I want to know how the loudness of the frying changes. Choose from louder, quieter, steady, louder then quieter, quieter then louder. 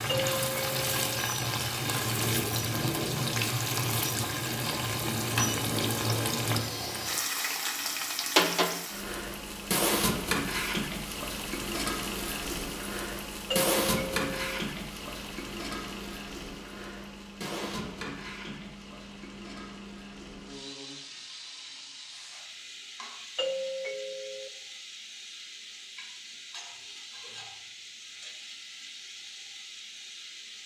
quieter.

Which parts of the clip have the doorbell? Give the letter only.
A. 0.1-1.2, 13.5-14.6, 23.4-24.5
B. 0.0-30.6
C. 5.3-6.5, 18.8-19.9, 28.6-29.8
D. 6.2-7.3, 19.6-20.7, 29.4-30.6
A.